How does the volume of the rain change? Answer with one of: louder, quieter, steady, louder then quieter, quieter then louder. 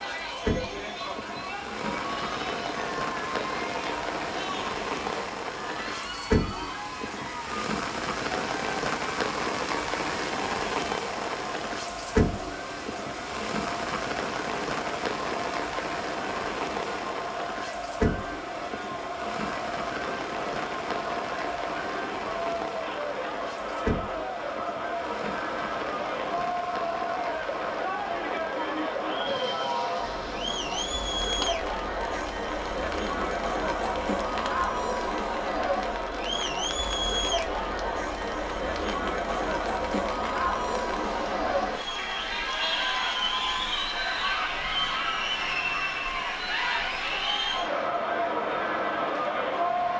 quieter.